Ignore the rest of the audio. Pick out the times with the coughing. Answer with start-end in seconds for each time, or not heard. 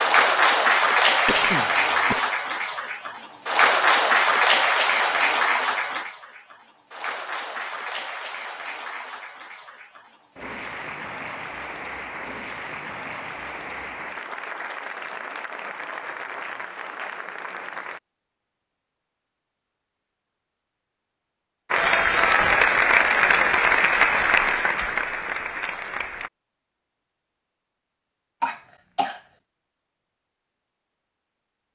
1.2-2.2, 28.4-29.2.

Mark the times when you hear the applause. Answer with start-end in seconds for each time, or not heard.
0.0-18.0, 21.7-26.3.